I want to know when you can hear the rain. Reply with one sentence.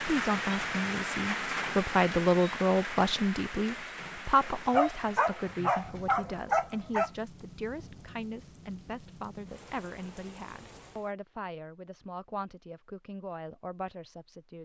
The rain can be heard from 0.0 to 11.2 s.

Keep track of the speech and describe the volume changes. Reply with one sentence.
The loudness of the speech goes down.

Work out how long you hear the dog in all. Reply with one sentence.
The dog can be heard for 3 seconds in total.